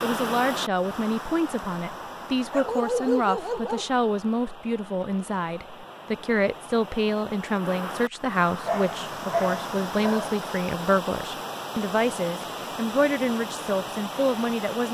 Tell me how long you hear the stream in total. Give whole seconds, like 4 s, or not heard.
15 s.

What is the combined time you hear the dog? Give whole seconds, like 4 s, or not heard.
3 s.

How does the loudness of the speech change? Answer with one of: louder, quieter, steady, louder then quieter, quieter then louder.
steady.